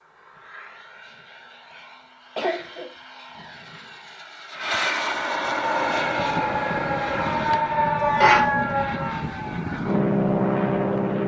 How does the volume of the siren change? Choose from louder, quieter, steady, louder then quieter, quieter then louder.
louder then quieter.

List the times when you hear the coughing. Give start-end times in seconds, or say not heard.
2.4-2.9, 8.2-8.8.